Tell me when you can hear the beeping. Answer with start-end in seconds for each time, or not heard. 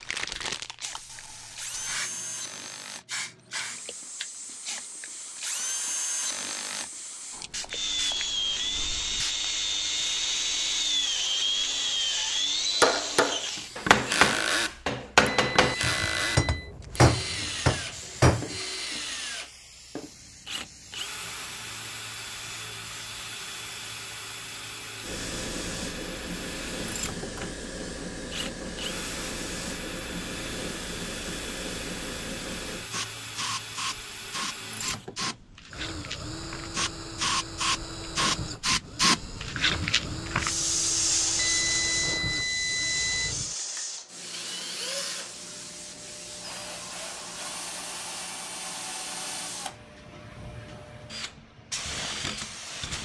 15.2-16.7, 41.4-43.4.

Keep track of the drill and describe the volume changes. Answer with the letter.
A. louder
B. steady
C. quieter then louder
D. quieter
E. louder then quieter
D.